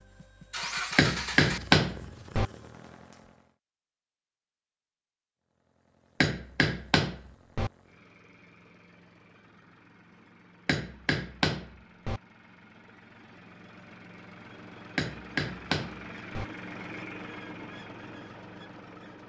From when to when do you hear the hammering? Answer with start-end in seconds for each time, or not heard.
0.9-2.5, 6.2-7.7, 10.7-12.2, 14.9-16.4.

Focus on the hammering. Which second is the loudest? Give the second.
2 s.